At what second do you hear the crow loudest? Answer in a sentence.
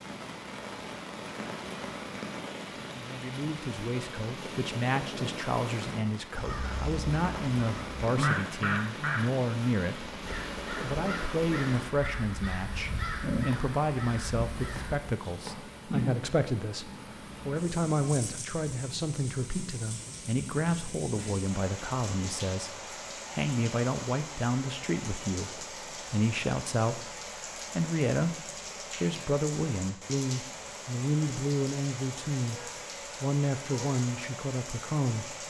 The volume of the crow peaks at 8 seconds.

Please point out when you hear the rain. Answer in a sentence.
You can hear the rain from 0.0 to 35.4 s.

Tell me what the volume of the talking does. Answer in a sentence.
The volume of the talking stays about the same.